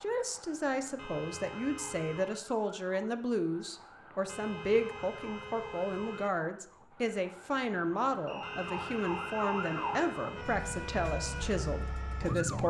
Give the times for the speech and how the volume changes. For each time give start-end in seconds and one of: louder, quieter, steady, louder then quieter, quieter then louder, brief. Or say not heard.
0.0-12.6 steady.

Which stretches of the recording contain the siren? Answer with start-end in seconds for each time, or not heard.
0.0-12.6.